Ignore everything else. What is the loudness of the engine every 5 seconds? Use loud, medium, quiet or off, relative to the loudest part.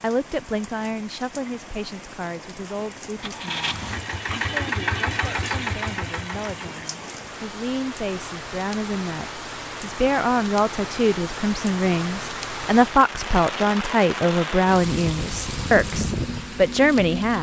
loud, loud, off, off.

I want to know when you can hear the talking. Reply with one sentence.
The talking can be heard from 0.0 to 17.3 s.